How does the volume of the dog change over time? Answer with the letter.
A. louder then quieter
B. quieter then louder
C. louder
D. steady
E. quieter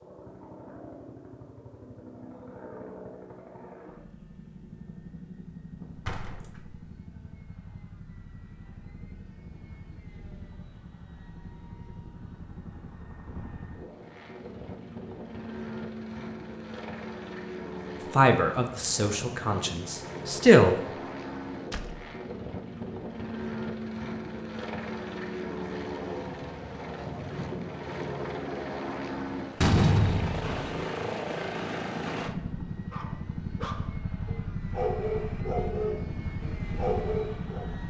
C.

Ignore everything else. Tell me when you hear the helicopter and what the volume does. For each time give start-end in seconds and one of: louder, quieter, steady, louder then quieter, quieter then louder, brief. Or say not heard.
0.0-37.8 louder.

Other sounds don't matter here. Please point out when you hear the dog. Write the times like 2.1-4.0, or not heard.
32.2-37.7.